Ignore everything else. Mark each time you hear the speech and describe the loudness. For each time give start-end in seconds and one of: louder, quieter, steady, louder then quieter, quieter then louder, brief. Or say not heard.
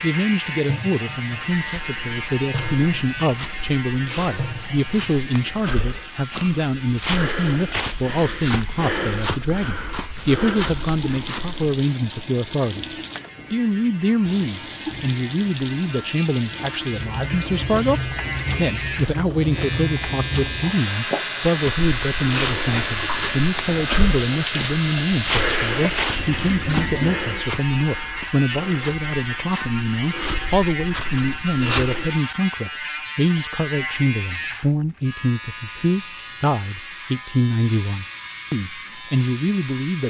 0.0-40.0 steady.